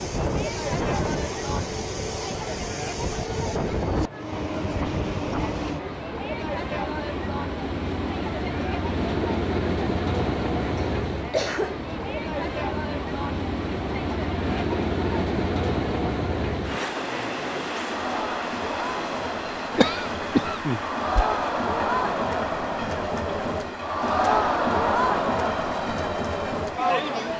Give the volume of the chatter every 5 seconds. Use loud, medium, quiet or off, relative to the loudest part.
medium, medium, medium, medium, loud, loud.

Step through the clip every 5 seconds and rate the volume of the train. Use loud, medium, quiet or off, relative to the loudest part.
loud, loud, loud, loud, medium, medium.